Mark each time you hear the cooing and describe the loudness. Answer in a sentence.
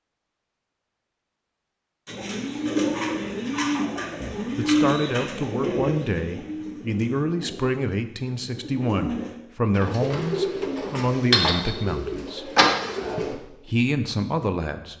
The cooing can be heard from 2.0 to 13.3 s, getting quieter then louder.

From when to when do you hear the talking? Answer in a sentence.
The talking can be heard from 4.2 to 12.6 s and from 13.2 to 14.9 s.